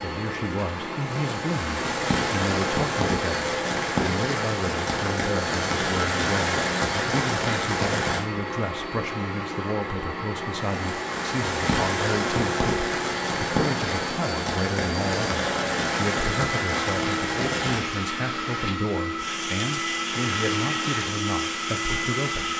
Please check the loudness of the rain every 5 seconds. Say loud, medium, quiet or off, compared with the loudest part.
loud, loud, loud, loud, medium.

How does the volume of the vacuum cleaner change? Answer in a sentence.
The loudness of the vacuum cleaner stays about the same.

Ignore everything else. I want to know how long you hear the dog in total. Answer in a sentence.
The dog can't be heard in this clip.